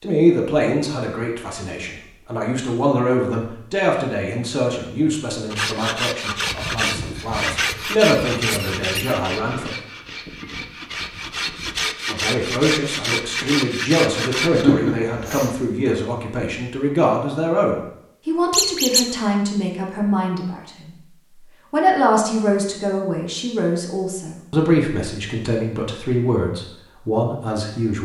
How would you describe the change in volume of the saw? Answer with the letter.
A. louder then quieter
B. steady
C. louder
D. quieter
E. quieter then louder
E.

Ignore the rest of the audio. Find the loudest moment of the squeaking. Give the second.
19 s.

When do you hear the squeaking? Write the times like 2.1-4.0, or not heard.
6.5-9.2, 18.5-19.1.